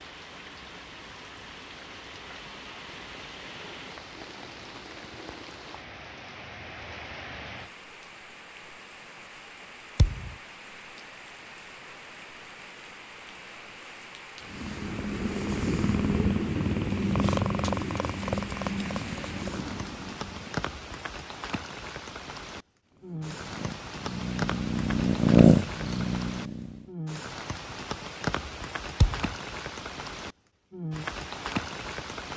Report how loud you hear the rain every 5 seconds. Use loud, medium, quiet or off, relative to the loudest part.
medium, medium, medium, medium, loud, loud, loud.